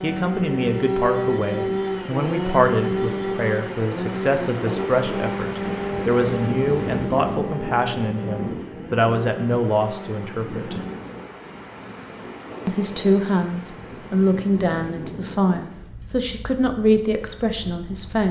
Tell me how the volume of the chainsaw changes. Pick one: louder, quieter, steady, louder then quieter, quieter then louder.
quieter.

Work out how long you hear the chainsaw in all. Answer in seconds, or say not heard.
11 s.